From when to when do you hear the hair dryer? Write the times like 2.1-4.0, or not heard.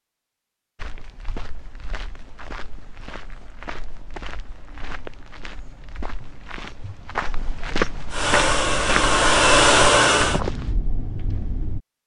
8.1-10.4.